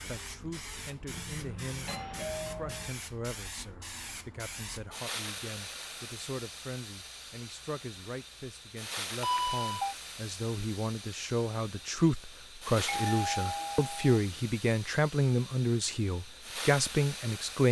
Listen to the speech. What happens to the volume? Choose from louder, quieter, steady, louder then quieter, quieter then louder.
louder.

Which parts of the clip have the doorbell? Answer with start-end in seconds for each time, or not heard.
1.1-2.9, 9.2-9.9, 12.8-14.2.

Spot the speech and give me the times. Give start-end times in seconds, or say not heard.
0.1-17.6.